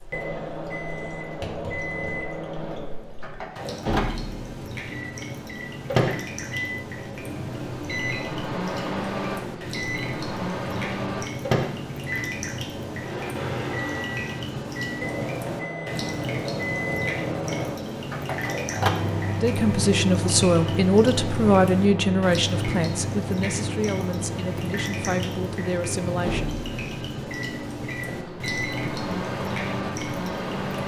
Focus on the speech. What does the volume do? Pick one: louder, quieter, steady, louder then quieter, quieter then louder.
quieter.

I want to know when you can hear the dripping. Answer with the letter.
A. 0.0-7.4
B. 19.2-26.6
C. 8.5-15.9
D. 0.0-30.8
D.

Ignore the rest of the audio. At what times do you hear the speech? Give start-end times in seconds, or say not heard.
19.2-26.6.